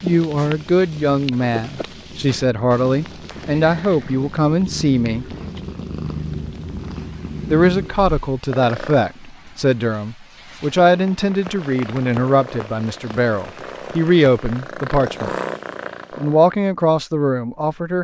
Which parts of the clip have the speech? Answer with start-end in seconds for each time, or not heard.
0.0-5.2, 7.5-15.3, 16.1-17.9.